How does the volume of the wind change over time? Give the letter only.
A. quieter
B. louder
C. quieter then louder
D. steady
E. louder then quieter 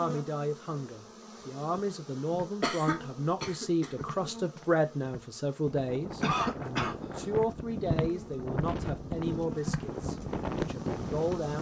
B.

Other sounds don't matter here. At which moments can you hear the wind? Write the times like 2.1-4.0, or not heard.
5.7-11.5.